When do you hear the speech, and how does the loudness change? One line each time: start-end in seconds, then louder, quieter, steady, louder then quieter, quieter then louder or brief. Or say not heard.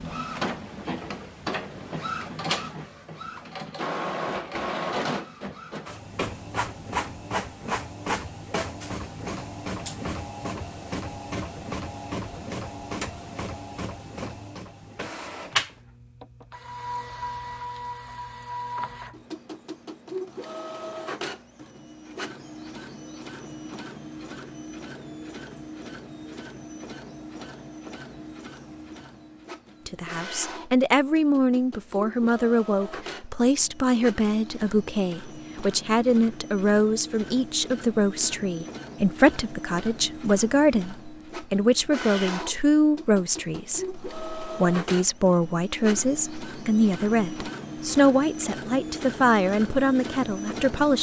29.9-50.9 steady.